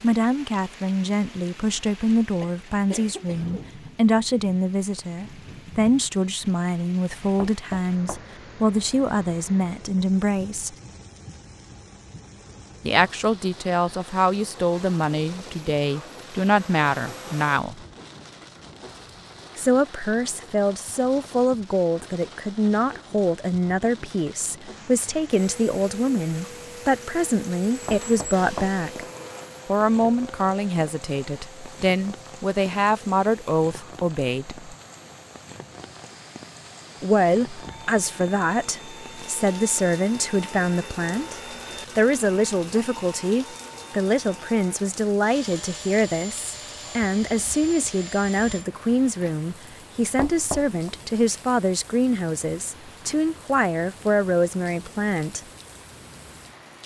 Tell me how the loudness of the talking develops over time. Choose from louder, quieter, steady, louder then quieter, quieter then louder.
steady.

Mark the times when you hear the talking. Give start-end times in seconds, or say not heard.
0.0-10.8, 12.8-17.8, 19.6-29.1, 29.6-34.6, 37.0-55.4.